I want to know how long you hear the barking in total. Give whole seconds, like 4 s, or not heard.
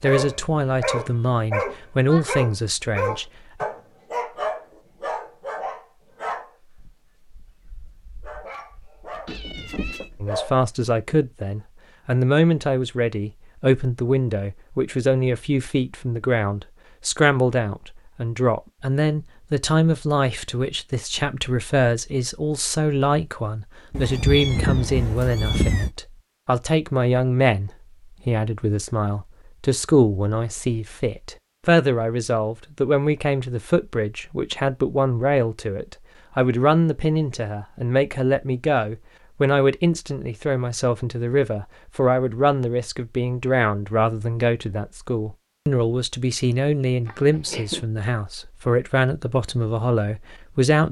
11 s.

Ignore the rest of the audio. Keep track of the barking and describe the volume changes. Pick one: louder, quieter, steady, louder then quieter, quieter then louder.
quieter then louder.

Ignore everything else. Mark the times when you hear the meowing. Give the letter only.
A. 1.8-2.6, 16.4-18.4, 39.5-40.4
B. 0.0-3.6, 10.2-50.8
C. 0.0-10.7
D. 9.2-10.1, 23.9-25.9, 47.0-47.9
D.